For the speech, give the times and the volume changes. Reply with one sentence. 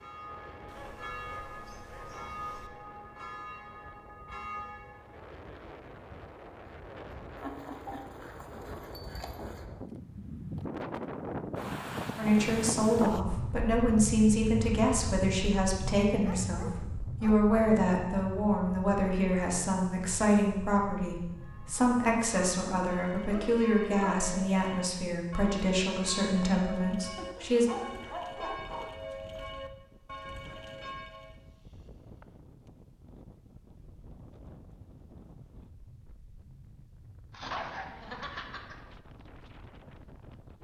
You can hear the speech from 12.2 to 27.6 s, at a steady volume.